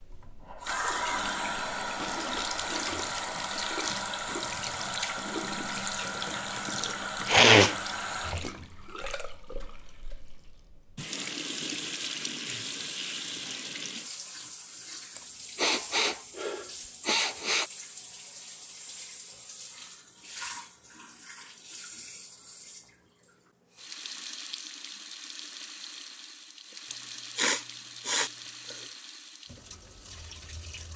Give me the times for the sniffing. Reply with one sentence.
The sniffing can be heard from 7.2 to 7.8 s, from 15.2 to 17.7 s and from 26.9 to 28.8 s.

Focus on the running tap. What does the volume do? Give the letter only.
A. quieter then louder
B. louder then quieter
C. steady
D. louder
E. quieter
E.